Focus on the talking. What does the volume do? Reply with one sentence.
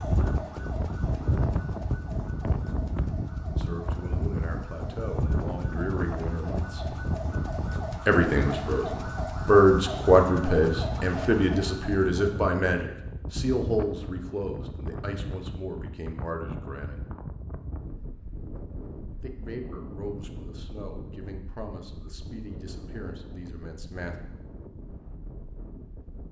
The loudness of the talking goes up, then down.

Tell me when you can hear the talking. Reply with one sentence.
You can hear the talking from 3.5 to 7.0 s, from 8.1 to 17.0 s and from 19.2 to 24.1 s.